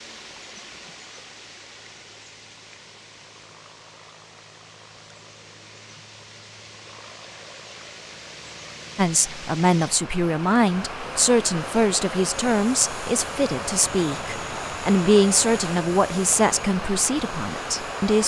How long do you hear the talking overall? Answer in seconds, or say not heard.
9 s.